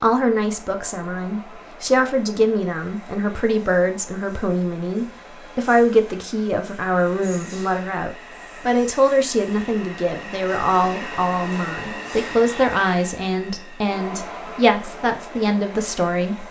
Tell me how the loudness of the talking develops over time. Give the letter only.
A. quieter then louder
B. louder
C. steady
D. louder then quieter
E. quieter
C.